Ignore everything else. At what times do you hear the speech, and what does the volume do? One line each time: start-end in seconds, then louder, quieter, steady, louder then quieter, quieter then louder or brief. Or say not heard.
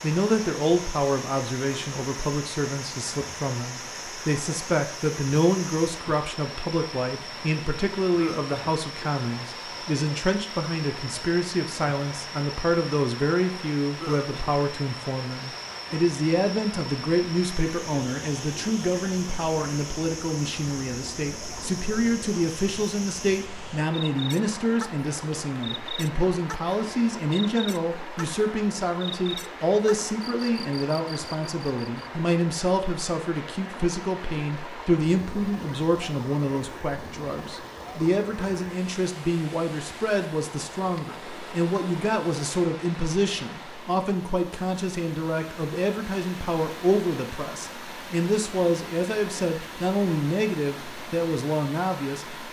0.0-52.4 steady.